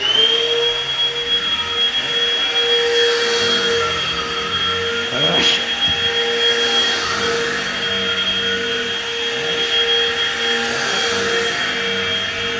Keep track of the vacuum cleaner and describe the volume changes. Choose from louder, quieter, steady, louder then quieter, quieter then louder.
steady.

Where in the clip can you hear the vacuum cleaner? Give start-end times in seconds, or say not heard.
0.0-12.5.